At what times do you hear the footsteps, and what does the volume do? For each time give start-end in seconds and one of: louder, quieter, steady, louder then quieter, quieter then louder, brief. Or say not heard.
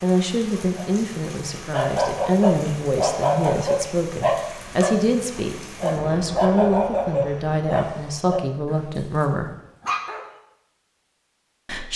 not heard.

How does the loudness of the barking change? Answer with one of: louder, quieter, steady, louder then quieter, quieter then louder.
quieter.